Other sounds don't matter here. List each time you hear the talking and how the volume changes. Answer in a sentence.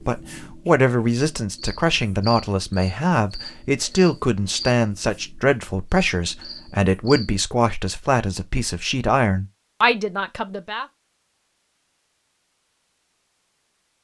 You can hear the talking from 0.1 to 10.8 s, at a steady volume.